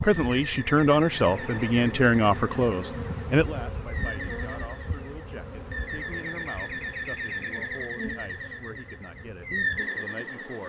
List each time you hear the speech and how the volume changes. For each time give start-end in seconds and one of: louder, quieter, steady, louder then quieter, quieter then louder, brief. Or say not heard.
0.0-10.6 quieter.